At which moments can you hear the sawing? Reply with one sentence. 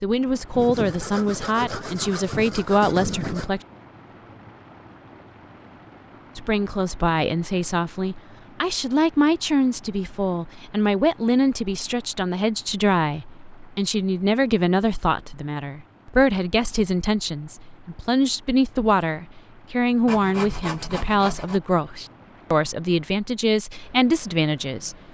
You can hear the sawing from 0.6 to 3.5 s and from 20.1 to 21.6 s.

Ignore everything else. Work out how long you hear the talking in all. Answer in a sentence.
The talking can be heard for 22 seconds in total.